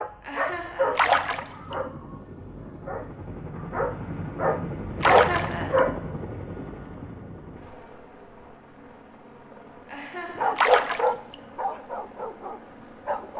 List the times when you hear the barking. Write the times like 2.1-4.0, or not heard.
0.0-6.0, 10.3-13.3.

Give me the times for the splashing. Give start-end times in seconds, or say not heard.
0.9-1.8, 5.0-5.8, 10.6-11.3.